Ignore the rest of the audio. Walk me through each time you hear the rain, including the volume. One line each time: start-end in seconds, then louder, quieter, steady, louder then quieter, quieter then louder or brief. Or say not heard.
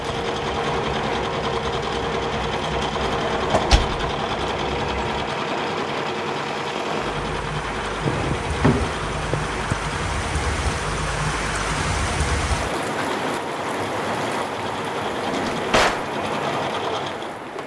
0.0-17.6 louder.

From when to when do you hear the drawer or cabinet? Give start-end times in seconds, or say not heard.
3.0-4.0, 8.1-9.8, 15.2-16.1.